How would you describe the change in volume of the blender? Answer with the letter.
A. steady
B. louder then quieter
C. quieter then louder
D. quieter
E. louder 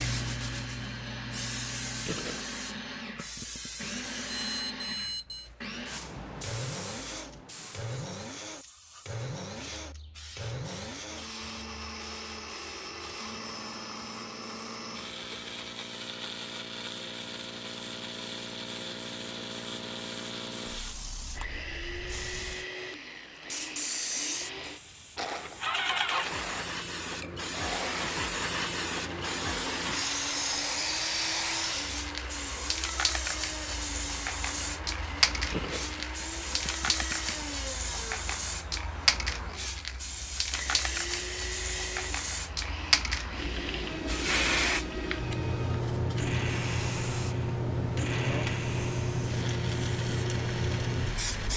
A.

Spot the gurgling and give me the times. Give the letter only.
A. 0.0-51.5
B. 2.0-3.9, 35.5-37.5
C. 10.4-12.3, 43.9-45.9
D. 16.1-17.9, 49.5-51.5
B.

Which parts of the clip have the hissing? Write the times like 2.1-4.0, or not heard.
0.0-51.5.